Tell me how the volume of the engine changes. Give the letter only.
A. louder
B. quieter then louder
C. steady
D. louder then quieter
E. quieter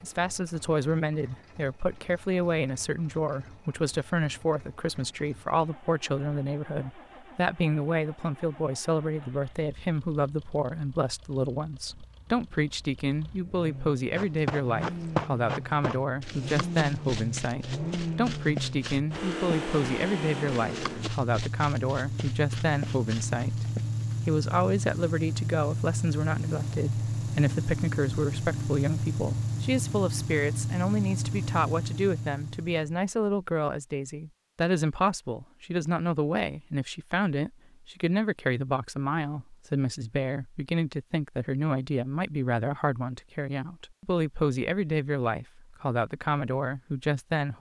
A.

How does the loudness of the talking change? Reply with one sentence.
The volume of the talking stays about the same.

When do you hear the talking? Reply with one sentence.
You can hear the talking from 0.0 to 47.5 s.